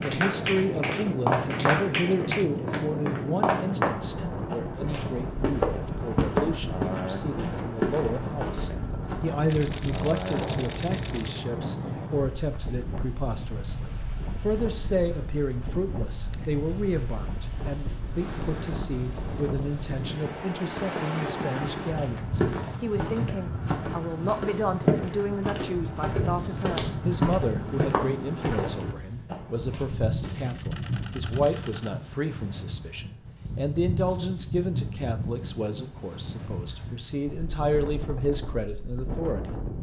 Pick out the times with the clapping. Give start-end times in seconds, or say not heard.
0.0-2.5.